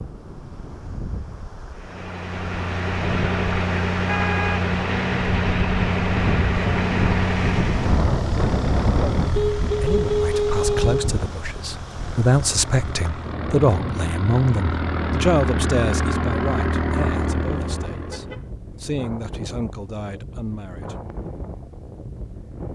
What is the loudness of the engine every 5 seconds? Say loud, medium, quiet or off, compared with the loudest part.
loud, loud, medium, loud, off.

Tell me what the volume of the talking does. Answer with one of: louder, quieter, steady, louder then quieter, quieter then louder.
louder then quieter.